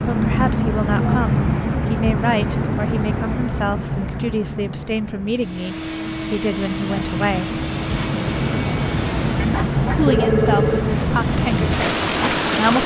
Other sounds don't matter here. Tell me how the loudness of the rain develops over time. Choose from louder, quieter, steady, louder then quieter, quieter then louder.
quieter then louder.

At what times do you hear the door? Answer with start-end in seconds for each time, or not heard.
not heard.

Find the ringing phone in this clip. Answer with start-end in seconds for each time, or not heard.
9.5-10.8.